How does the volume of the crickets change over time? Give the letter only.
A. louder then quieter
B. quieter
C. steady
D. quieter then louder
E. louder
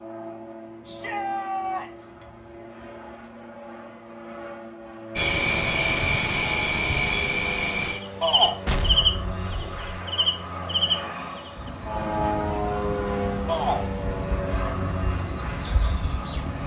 B.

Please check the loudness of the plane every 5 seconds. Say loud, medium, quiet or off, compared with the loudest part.
medium, medium, loud, medium.